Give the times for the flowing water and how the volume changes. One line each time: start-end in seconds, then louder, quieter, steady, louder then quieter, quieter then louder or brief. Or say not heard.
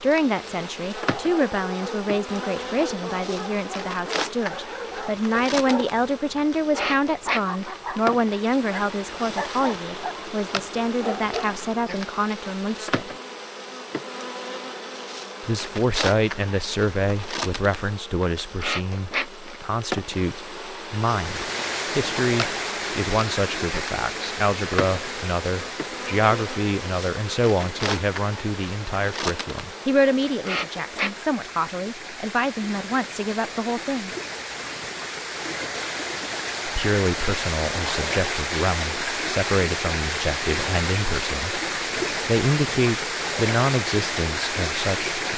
21.1-45.3 quieter then louder.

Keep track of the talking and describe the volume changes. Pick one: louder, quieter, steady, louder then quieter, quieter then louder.
steady.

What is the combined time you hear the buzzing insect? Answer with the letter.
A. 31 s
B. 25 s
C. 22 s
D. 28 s
A.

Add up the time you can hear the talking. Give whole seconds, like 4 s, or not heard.
40 s.